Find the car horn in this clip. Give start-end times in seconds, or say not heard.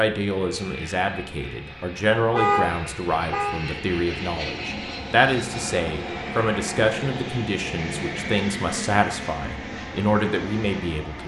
2.3-3.5.